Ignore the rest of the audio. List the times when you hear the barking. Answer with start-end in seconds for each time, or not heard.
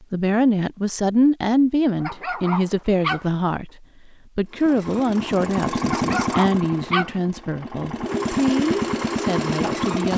2.0-3.3, 5.8-7.2.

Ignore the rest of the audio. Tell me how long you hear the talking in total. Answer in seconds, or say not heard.
9 s.